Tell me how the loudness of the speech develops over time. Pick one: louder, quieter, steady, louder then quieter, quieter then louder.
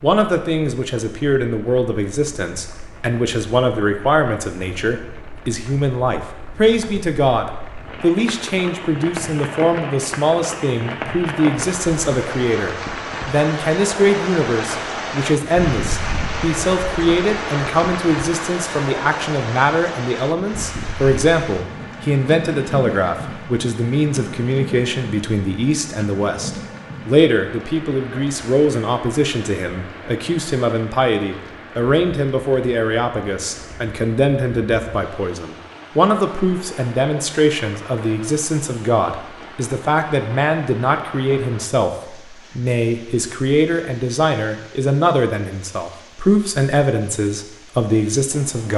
steady.